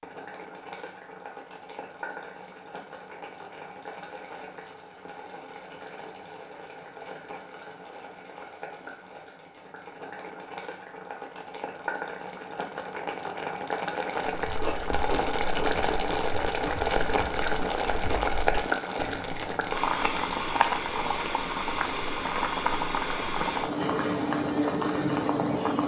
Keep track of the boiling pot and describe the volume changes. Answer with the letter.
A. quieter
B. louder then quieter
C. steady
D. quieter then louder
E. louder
E.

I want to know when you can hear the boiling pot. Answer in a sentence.
The boiling pot can be heard from 0.0 to 25.8 s.